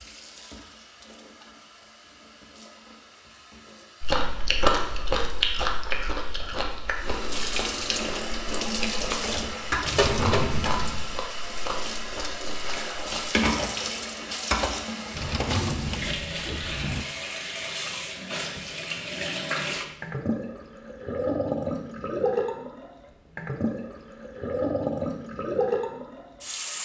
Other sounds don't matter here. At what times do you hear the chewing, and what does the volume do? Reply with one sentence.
You can hear the chewing from 4.0 to 13.2 s, getting quieter.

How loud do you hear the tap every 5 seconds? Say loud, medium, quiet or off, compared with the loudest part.
quiet, loud, loud, loud, loud, loud.